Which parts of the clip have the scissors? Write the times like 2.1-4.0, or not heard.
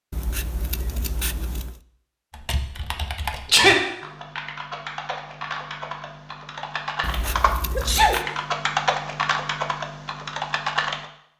0.1-1.8, 7.0-8.2.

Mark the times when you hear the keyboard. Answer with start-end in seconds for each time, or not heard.
2.3-11.1.